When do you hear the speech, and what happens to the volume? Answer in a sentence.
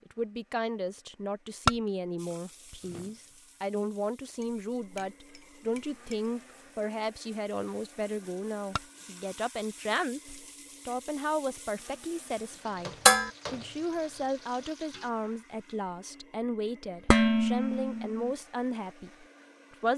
You can hear the speech from 0.1 to 19.9 s, at a steady volume.